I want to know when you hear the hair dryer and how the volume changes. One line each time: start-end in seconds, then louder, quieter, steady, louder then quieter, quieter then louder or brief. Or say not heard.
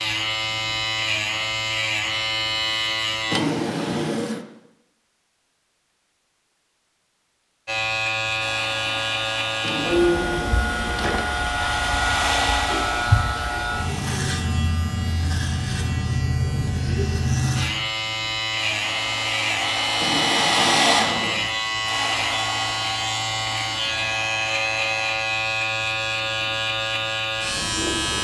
8.4-14.2 louder then quieter
18.6-25.1 louder then quieter.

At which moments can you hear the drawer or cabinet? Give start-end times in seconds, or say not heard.
3.3-4.5, 9.6-11.6, 20.0-21.4.